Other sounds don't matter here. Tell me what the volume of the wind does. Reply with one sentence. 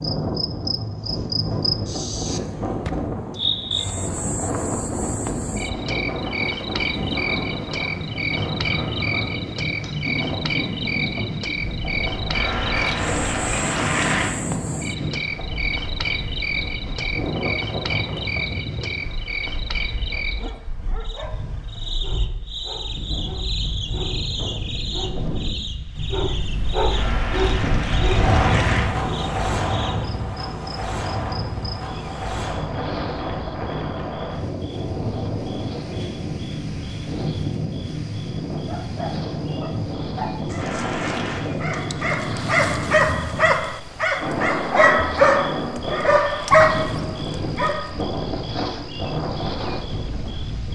The volume of the wind stays about the same.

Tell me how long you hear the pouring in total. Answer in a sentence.
You can hear the pouring for 5 seconds altogether.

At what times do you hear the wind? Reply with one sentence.
You can hear the wind from 0.0 to 50.7 s.